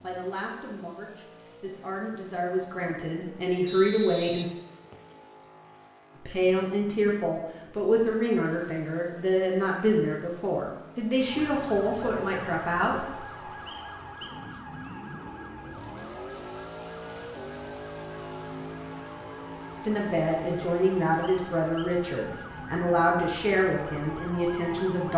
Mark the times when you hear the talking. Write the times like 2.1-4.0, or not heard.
0.0-4.5, 6.2-13.0, 19.8-25.1.